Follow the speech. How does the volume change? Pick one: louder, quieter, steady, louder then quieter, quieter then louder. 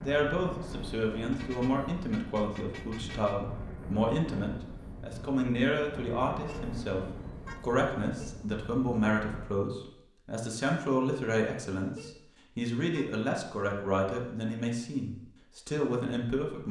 steady.